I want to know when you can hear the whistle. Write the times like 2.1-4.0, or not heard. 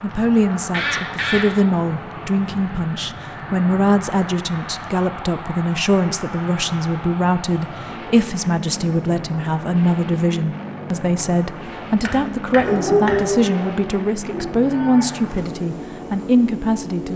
not heard.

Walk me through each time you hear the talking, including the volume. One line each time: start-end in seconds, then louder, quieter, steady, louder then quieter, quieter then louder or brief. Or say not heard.
0.0-17.1 steady.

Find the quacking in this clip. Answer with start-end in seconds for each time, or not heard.
0.1-1.5, 12.0-13.4.